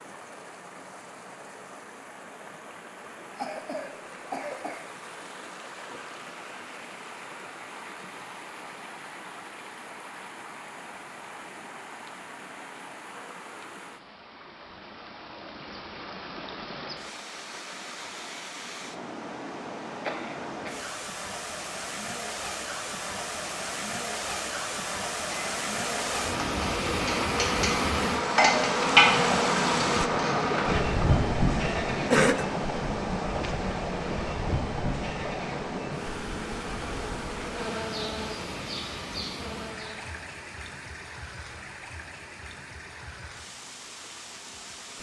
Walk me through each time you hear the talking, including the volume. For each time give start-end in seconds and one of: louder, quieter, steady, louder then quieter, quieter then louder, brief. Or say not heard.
not heard.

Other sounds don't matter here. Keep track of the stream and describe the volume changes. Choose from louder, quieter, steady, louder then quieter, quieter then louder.
louder then quieter.